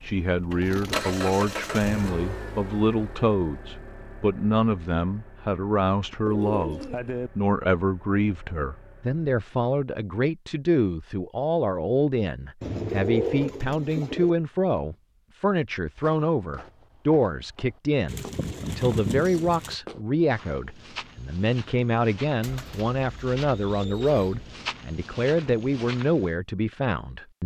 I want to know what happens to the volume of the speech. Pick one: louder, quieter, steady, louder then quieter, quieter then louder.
steady.